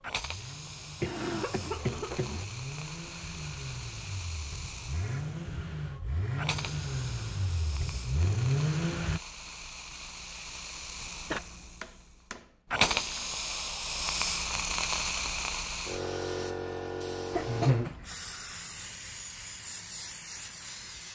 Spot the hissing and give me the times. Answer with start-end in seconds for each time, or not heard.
0.0-21.1.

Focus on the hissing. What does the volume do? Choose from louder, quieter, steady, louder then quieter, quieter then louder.
louder then quieter.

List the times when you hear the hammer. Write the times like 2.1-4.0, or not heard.
11.3-13.2.